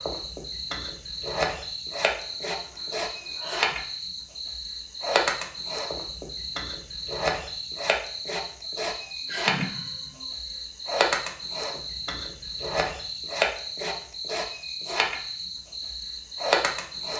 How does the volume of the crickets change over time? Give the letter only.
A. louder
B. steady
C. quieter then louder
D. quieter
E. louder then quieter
B.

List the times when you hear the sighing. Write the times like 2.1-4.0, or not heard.
2.1-3.8, 8.7-10.5.